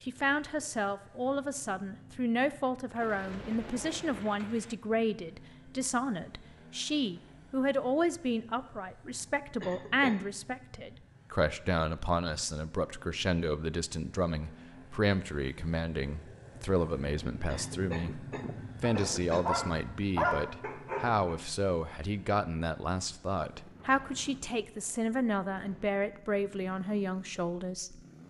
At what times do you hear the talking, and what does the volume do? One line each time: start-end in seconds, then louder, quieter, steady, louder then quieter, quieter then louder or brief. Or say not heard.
0.0-28.0 steady.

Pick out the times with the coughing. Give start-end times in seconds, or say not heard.
9.6-10.2, 17.4-19.5.